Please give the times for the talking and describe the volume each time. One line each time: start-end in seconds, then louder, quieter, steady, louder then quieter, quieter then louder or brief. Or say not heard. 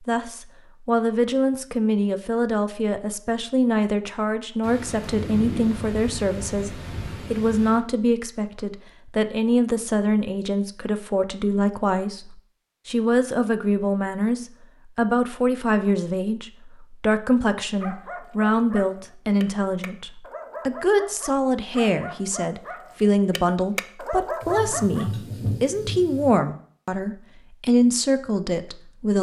0.1-29.1 steady.